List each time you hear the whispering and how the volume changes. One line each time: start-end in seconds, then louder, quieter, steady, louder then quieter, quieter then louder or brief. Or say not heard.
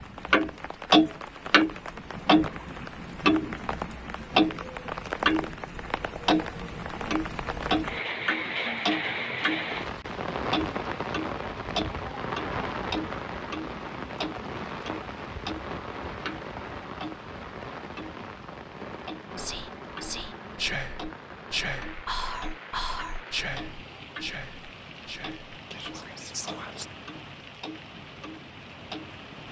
19.4-26.9 quieter.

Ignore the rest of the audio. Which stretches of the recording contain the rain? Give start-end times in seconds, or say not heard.
0.0-29.4.